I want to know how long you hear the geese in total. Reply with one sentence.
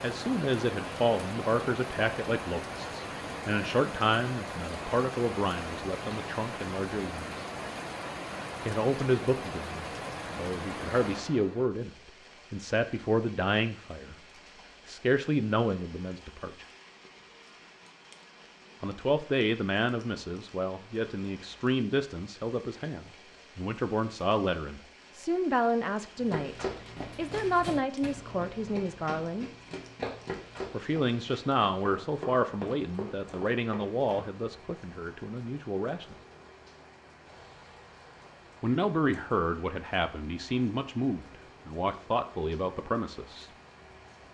The geese can't be heard in this clip.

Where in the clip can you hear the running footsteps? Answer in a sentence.
The running footsteps can be heard from 26.1 to 34.3 s.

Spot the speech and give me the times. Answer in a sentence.
You can hear the speech from 0.0 to 7.3 s, from 8.7 to 14.2 s, from 14.8 to 16.6 s, from 18.8 to 29.5 s, from 30.7 to 36.1 s and from 38.6 to 43.5 s.